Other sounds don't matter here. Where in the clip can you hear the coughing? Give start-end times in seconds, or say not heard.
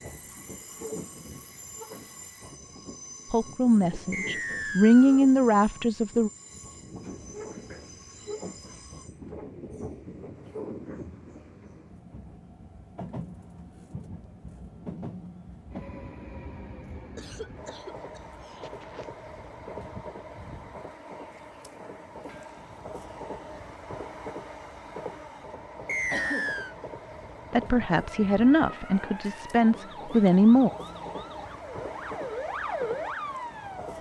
0.1-2.4, 17.1-19.1, 26.1-26.6.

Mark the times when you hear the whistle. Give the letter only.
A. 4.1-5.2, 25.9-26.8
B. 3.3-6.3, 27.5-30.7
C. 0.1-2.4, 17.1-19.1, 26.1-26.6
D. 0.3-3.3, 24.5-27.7
A.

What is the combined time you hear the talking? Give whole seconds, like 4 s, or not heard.
6 s.